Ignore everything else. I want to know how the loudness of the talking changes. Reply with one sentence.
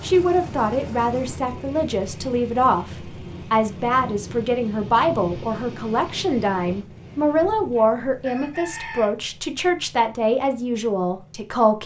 The volume of the talking stays about the same.